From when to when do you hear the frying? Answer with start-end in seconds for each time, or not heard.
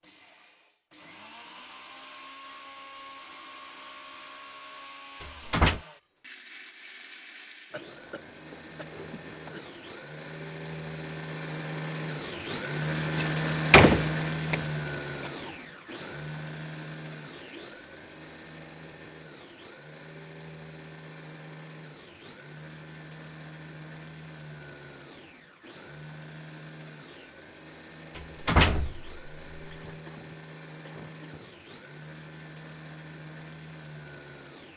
not heard.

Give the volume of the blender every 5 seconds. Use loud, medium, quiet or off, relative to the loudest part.
quiet, quiet, loud, medium, quiet, quiet, quiet.